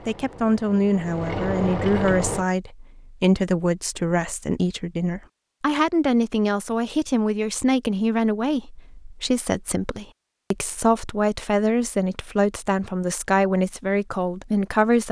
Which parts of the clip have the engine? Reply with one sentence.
The engine can be heard from 0.0 to 2.5 s.